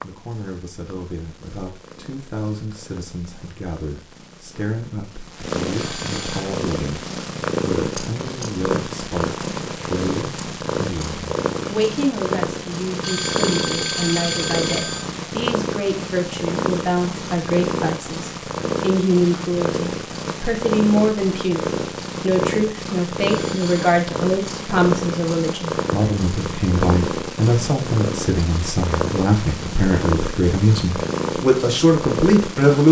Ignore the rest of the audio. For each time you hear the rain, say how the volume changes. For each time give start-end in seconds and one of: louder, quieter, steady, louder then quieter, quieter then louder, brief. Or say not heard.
not heard.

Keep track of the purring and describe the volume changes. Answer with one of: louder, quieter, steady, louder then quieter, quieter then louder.
louder.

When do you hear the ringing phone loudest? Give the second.
14 s.